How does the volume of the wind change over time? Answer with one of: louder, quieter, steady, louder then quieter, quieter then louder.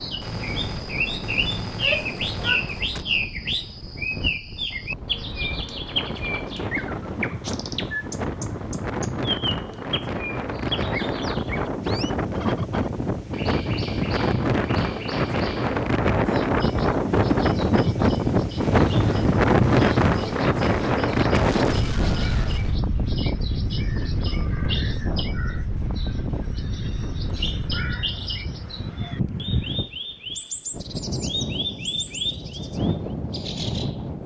louder then quieter.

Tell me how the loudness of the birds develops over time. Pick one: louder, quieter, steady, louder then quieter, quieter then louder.
quieter then louder.